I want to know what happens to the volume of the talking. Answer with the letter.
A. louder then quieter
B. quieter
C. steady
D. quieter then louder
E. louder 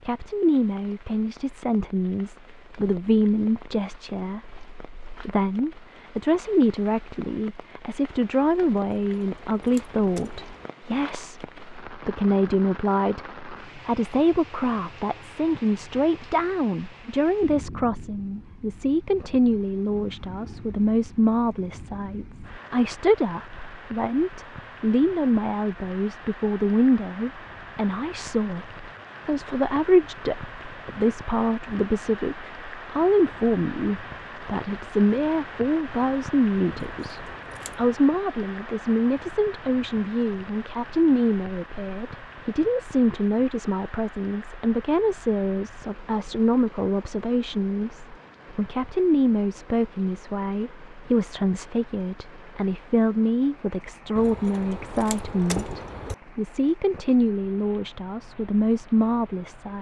C.